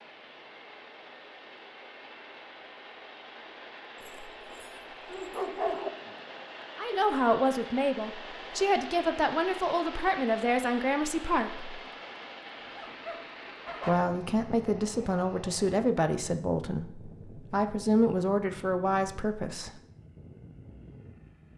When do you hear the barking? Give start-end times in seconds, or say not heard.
4.0-5.9, 12.6-14.1.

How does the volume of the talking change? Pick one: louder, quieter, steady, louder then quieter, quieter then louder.
steady.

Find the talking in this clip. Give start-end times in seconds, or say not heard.
6.8-11.8, 13.8-19.7.